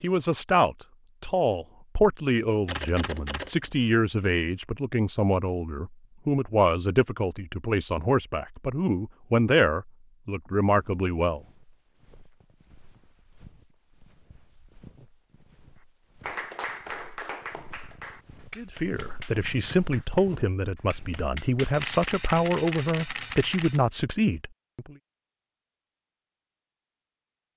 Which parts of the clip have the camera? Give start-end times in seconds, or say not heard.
2.6-3.9, 21.7-23.9.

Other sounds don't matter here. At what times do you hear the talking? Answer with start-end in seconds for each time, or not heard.
0.0-11.4, 18.6-24.9.